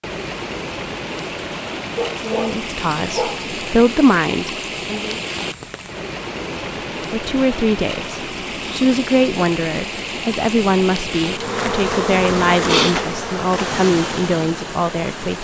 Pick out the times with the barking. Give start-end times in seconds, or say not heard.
1.9-3.5.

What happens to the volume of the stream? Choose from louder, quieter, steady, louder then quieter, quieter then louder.
steady.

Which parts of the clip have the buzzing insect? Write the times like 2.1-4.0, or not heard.
11.3-13.8.